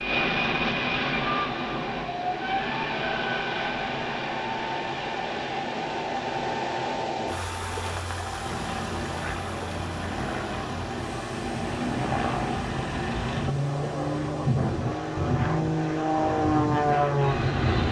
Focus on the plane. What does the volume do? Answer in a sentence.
The loudness of the plane goes down, then up.